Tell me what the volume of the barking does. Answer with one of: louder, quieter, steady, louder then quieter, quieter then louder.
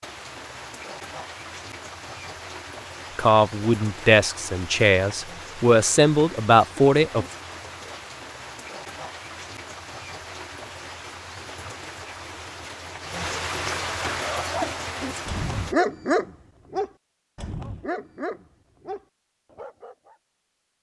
louder then quieter.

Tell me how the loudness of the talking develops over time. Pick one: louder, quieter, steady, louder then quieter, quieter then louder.
quieter then louder.